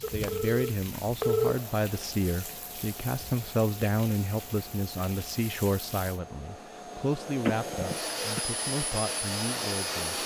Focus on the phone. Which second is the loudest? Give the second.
1 s.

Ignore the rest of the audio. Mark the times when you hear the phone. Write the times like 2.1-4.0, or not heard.
0.0-1.6, 7.5-8.4.